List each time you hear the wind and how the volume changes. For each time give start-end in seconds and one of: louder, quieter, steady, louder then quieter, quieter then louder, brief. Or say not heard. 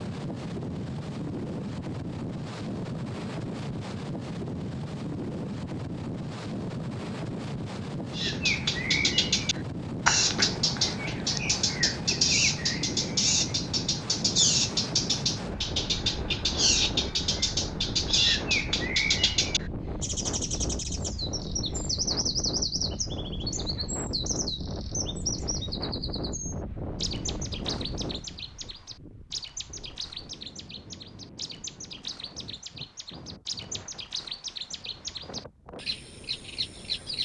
0.0-37.2 quieter.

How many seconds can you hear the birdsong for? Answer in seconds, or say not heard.
29 s.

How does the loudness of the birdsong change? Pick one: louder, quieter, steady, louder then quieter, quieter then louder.
quieter.